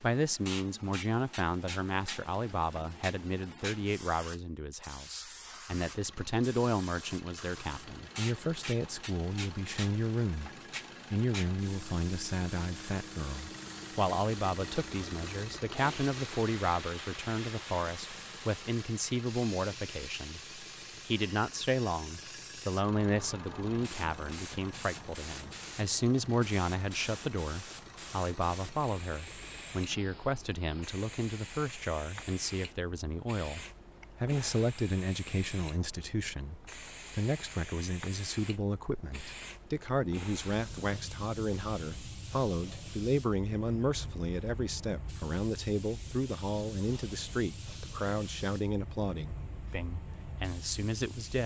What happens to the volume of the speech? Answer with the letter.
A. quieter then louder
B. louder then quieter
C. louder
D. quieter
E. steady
E.